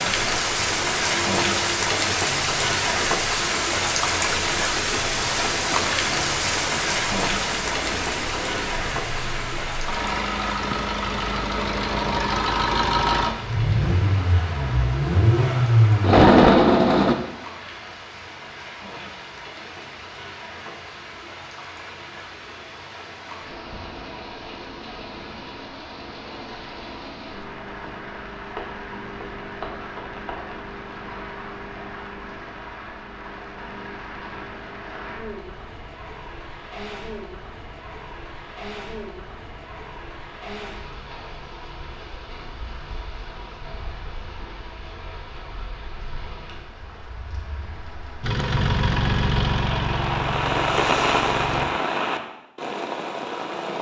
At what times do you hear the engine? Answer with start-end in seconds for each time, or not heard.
0.0-17.1, 48.2-51.6.